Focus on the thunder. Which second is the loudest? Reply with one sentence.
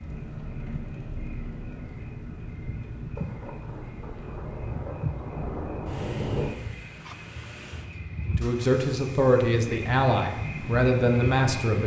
The loudest moment of the thunder is at 6 seconds.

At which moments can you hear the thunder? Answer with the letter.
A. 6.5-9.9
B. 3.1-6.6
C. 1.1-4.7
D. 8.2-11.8
B.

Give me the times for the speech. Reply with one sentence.
The speech can be heard from 8.2 to 11.8 s.